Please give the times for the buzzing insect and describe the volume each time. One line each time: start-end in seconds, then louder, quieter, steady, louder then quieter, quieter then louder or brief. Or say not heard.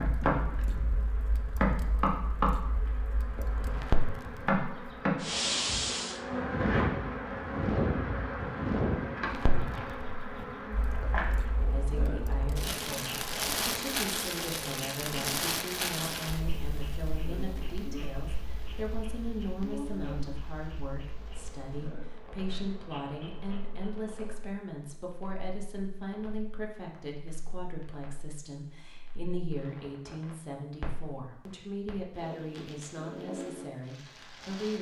0.0-24.5 quieter.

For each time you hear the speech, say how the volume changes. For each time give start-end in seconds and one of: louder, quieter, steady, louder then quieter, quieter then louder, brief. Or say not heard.
11.7-34.7 steady.